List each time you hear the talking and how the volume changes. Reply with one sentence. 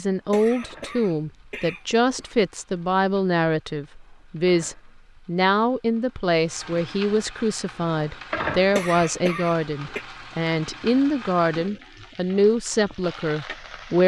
The talking can be heard from 0.0 to 14.0 s, at a steady volume.